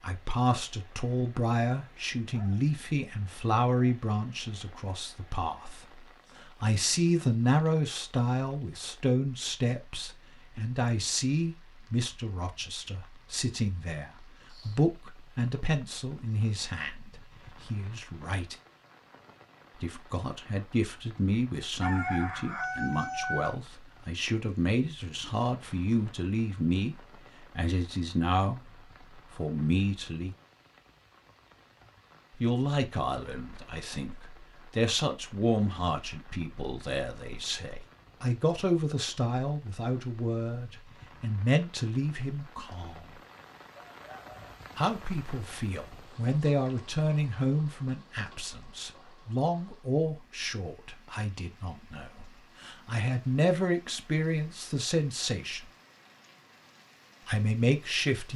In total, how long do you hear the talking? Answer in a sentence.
You can hear the talking for 52 seconds altogether.